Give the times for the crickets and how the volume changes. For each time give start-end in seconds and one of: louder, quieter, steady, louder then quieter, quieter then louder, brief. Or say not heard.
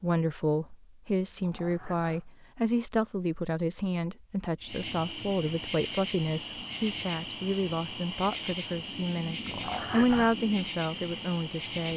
4.6-11.9 steady.